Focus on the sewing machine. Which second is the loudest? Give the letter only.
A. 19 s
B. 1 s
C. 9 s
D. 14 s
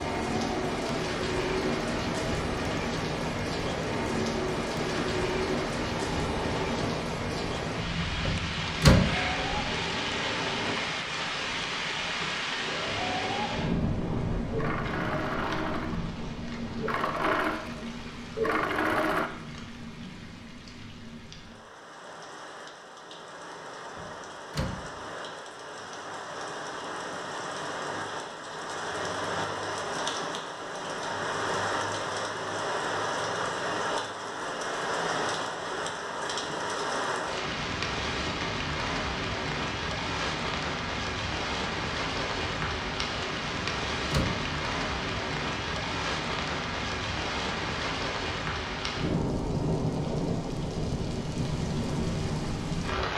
A.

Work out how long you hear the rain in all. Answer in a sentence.
You can hear the rain for 53 seconds altogether.